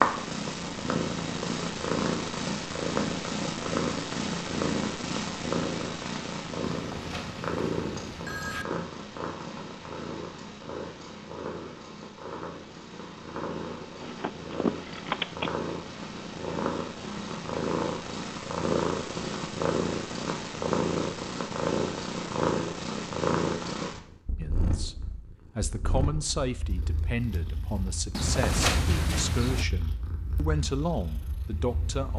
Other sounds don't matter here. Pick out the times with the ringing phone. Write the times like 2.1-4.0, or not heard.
6.7-8.7, 14.0-15.5, 28.1-29.6.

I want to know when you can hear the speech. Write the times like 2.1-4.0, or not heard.
24.4-32.1.